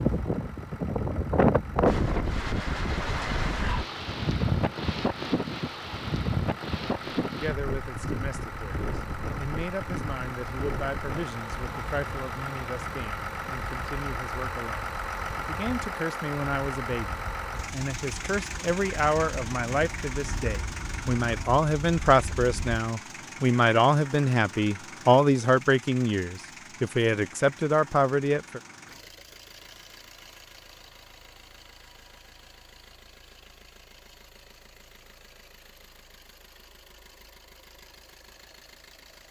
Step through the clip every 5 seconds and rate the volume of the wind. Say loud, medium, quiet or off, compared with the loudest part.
loud, medium, quiet, quiet, quiet, off, off, off.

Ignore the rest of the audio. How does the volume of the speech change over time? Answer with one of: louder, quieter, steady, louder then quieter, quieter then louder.
louder.